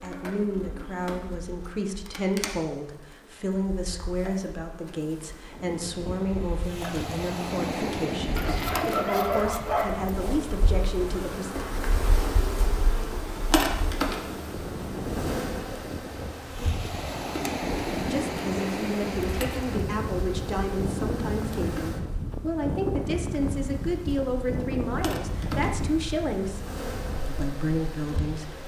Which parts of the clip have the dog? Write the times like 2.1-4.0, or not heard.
8.3-10.1.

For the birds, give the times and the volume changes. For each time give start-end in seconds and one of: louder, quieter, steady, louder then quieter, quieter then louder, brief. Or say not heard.
not heard.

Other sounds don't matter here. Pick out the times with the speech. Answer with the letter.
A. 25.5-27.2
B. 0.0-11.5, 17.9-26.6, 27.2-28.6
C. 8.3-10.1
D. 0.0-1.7
B.